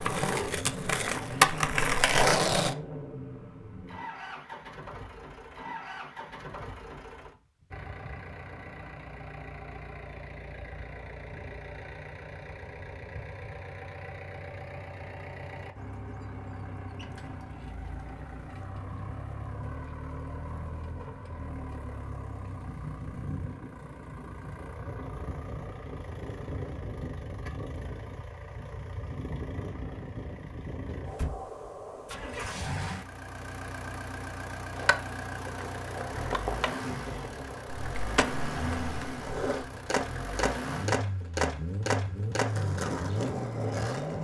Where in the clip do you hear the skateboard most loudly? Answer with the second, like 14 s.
2 s.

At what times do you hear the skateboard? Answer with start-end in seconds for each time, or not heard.
0.0-2.8, 34.8-44.1.